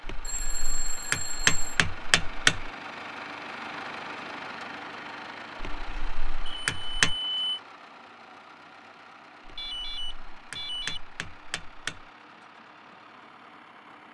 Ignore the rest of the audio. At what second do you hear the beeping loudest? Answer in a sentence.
The loudest moment of the beeping is at 7 seconds.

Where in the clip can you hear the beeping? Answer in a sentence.
You can hear the beeping from 0.2 to 1.8 s, from 6.5 to 7.6 s and from 9.6 to 11.0 s.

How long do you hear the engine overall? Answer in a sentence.
The engine can be heard for 14 seconds in total.